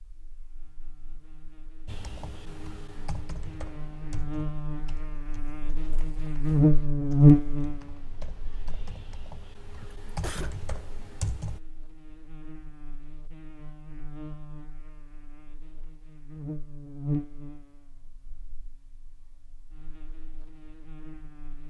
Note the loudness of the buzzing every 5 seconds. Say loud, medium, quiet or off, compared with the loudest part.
quiet, loud, quiet, quiet, quiet.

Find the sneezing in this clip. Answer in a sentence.
You can hear the sneezing from 9.8 to 10.6 s.